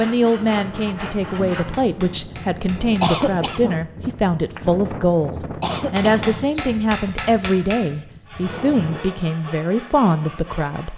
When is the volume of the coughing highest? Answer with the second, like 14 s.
3 s.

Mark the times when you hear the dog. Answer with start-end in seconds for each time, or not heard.
not heard.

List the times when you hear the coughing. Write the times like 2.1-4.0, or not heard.
3.0-3.8, 5.6-6.3.